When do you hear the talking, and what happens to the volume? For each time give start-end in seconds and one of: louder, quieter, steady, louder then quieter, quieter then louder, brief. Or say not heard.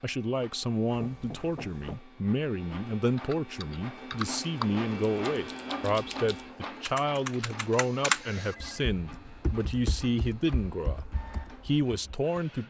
0.0-12.6 steady.